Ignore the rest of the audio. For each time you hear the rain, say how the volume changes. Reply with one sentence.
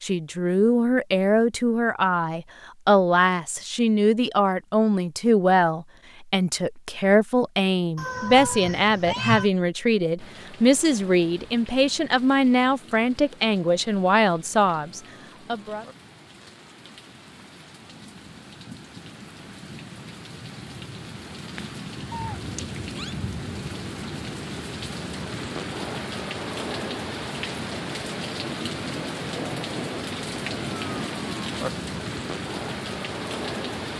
The rain can be heard from 10.2 to 33.9 s, getting louder.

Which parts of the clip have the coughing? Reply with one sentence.
The coughing can't be heard in this clip.